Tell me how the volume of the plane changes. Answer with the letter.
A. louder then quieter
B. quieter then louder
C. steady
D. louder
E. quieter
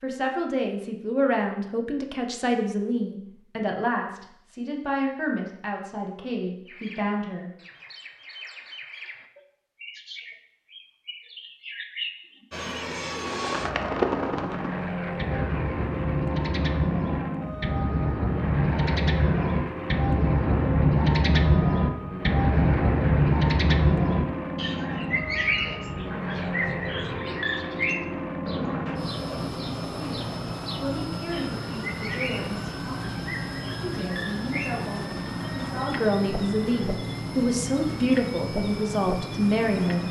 C.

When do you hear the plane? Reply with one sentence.
You can hear the plane from 12.5 to 40.0 s.